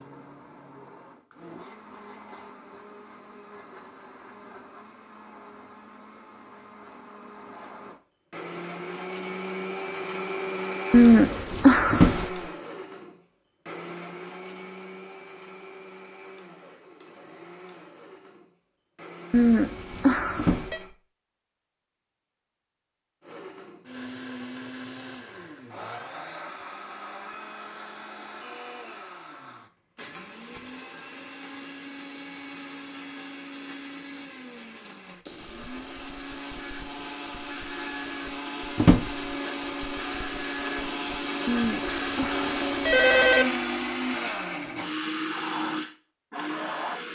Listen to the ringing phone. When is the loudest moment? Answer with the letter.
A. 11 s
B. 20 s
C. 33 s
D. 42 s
A.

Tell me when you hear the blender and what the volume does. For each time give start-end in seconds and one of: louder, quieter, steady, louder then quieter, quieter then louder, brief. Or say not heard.
0.0-20.9 louder then quieter
23.2-47.1 louder.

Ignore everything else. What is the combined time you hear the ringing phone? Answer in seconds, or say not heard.
5 s.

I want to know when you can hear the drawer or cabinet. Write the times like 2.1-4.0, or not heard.
11.9-12.3, 20.4-20.9, 38.8-39.3.